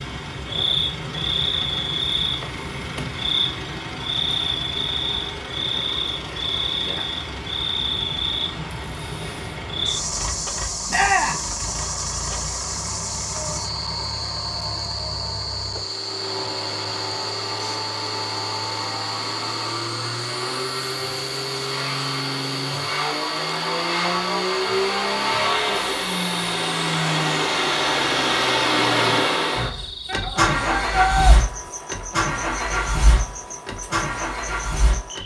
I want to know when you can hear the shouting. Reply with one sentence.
You can hear the shouting from 10.9 to 11.4 s and from 30.1 to 31.4 s.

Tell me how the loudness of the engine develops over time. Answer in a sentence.
The volume of the engine goes up.